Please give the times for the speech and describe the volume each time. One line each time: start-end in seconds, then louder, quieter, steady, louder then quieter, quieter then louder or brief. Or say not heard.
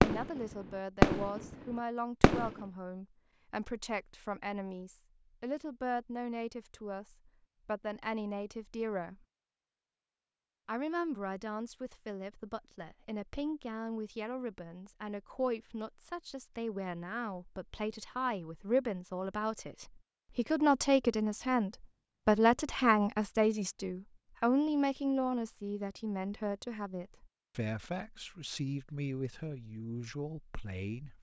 0.0-9.2 steady
10.7-31.1 louder then quieter.